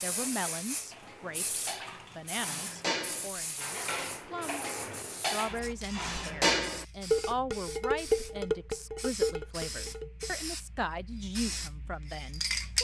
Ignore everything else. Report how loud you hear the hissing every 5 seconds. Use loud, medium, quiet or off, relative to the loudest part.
medium, medium, loud.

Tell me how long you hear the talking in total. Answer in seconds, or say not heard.
13 s.